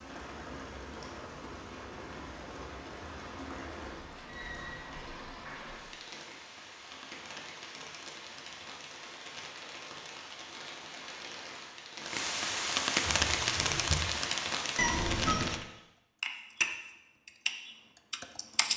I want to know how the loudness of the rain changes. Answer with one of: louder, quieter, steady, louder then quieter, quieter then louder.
louder.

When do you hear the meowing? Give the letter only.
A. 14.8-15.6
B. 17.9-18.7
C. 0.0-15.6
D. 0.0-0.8
A.